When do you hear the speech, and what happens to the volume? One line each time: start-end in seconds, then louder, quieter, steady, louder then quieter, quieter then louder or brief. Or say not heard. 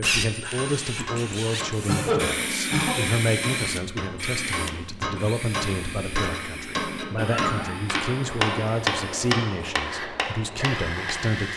0.0-11.5 steady.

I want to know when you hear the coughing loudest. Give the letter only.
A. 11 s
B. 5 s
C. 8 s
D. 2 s
D.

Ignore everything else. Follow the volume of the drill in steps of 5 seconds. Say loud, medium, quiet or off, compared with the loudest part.
loud, medium, loud.